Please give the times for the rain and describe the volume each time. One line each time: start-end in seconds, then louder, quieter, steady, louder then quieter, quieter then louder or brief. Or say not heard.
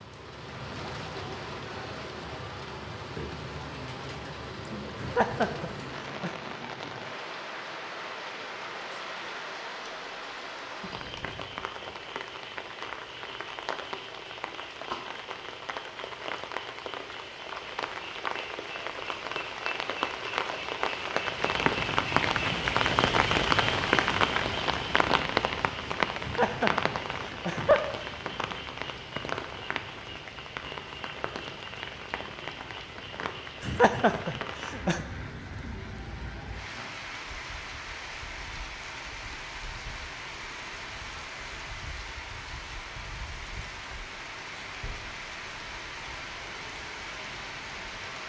0.0-48.2 louder then quieter.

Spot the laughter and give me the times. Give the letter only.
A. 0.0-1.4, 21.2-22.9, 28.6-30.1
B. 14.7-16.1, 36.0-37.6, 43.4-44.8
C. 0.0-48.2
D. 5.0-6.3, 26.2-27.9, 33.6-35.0
D.